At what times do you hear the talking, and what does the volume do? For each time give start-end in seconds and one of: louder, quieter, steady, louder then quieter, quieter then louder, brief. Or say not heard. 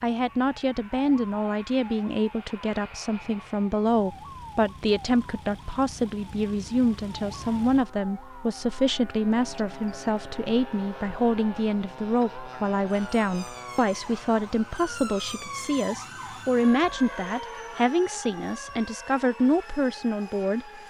0.0-20.7 steady.